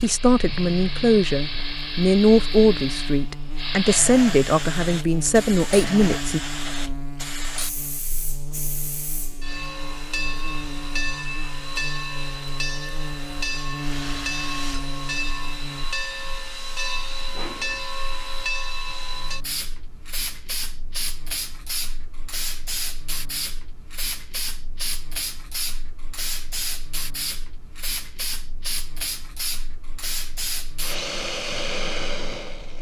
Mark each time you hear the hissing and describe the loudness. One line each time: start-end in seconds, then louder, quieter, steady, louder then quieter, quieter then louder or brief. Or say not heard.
0.0-32.7 steady.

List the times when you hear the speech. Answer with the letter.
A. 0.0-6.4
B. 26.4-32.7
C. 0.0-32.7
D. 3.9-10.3
A.